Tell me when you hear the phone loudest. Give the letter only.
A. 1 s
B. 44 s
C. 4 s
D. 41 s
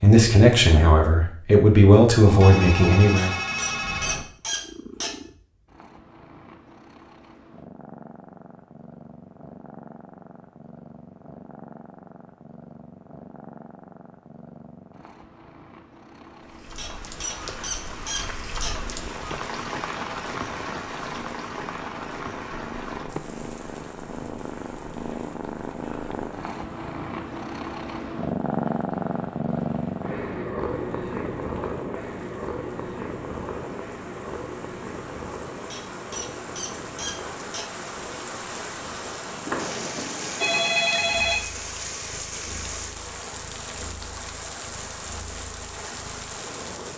D.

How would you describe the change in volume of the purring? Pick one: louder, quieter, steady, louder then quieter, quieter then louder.
louder then quieter.